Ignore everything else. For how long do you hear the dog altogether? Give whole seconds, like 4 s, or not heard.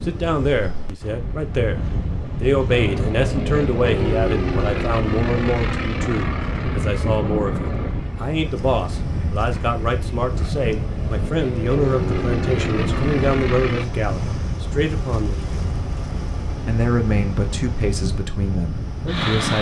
not heard.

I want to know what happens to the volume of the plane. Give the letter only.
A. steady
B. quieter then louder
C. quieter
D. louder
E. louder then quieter
B.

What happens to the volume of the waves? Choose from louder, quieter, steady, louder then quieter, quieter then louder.
steady.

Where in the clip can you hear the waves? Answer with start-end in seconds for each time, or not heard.
0.0-19.5.